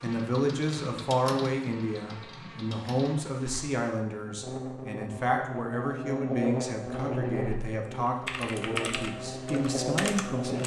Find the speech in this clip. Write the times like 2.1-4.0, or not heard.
0.0-10.6.